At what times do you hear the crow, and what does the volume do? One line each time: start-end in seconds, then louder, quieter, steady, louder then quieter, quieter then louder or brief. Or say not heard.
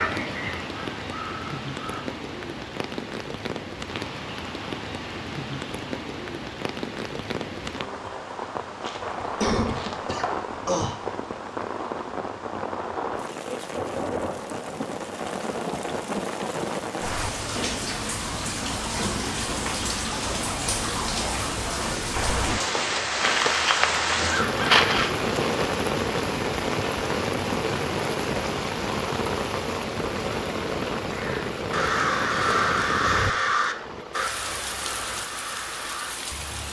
0.0-2.0 brief
23.2-25.1 brief
31.1-36.6 quieter.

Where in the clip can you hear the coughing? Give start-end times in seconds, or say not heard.
8.8-11.1.